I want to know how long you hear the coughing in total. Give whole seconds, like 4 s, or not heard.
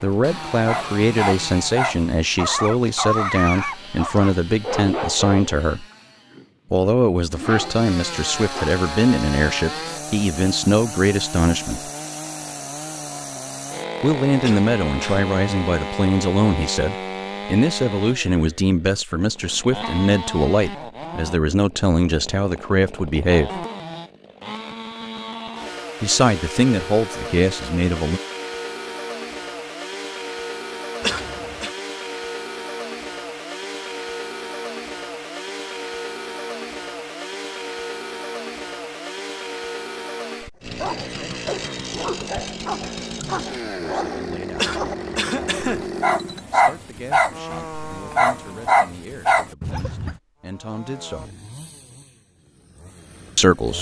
3 s.